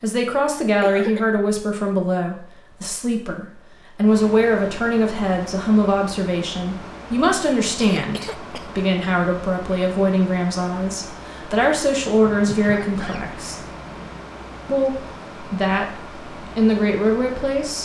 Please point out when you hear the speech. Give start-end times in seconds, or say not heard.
0.0-13.6, 14.7-17.8.